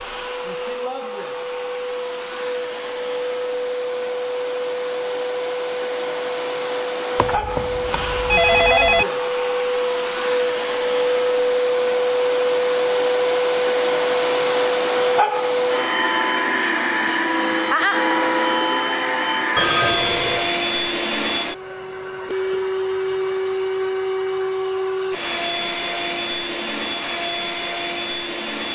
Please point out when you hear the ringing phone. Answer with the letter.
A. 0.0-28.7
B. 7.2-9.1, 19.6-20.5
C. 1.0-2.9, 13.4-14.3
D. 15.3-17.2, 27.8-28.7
B.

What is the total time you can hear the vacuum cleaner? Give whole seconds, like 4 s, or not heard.
29 s.